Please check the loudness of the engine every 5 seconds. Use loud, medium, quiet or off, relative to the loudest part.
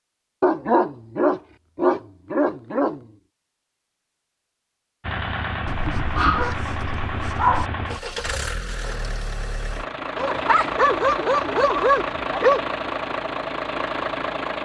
off, loud, loud.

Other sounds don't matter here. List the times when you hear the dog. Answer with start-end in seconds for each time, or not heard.
0.4-3.0, 5.7-7.7, 10.2-12.7.